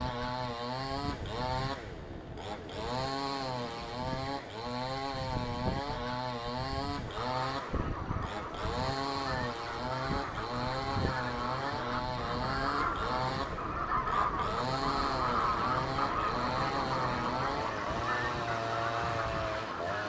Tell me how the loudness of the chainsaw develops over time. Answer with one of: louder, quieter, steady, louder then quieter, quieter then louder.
steady.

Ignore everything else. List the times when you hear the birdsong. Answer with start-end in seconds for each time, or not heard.
7.0-20.0.